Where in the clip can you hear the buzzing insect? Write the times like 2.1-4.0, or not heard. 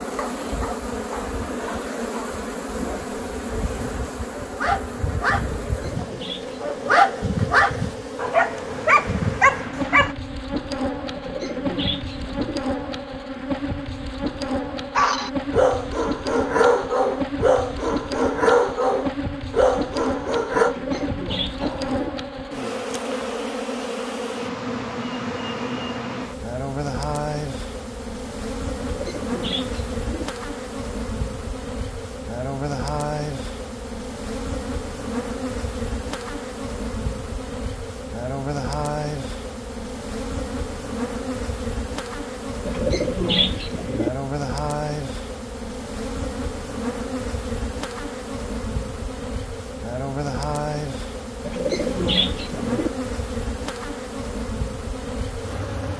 0.0-55.9.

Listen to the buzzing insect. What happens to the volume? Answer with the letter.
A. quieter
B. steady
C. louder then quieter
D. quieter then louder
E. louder
B.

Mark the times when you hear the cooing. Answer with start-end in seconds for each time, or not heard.
5.7-7.0, 11.2-12.6, 20.6-22.1, 28.8-30.2, 42.6-44.1, 51.5-52.9.